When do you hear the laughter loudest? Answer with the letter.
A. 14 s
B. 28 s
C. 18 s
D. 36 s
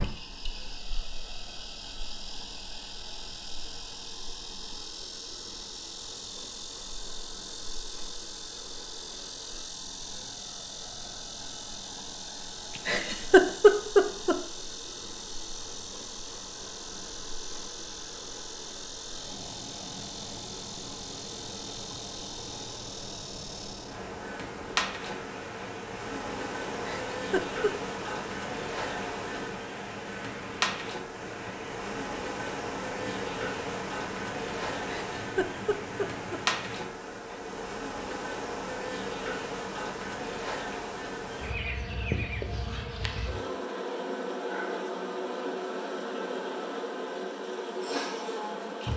A.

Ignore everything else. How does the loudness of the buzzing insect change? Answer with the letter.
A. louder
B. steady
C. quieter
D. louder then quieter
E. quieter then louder
A.